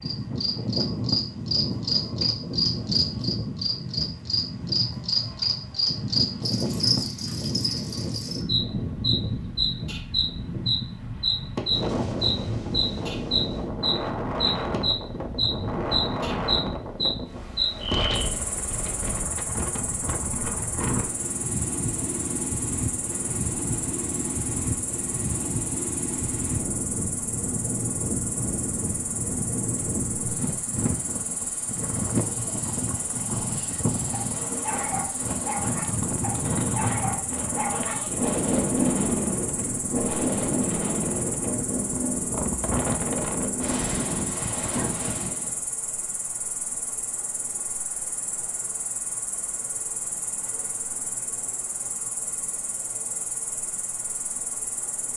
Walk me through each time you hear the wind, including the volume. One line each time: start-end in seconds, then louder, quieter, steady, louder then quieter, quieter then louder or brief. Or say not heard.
0.0-45.6 steady.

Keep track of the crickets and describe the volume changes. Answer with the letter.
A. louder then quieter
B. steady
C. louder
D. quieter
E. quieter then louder
D.